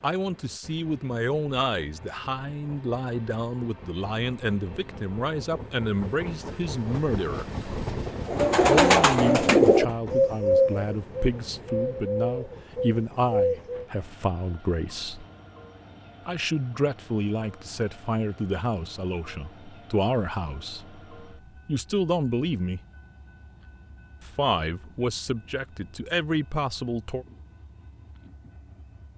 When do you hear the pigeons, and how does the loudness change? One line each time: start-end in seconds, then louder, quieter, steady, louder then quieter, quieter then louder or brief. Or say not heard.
8.2-13.8 quieter.